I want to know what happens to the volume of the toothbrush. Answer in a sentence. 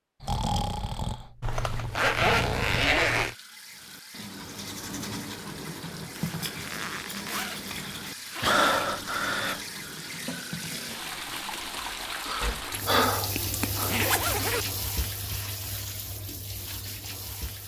The volume of the toothbrush goes down.